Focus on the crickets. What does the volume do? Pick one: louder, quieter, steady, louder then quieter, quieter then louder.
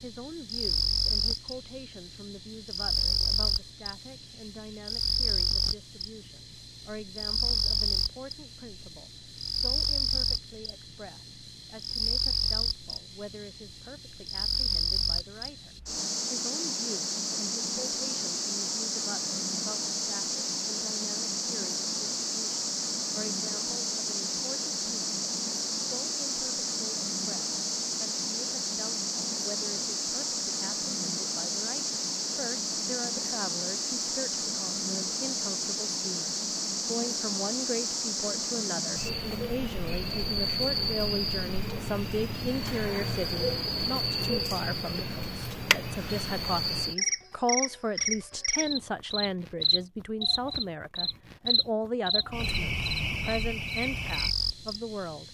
steady.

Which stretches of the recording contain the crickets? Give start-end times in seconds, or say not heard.
0.0-55.2.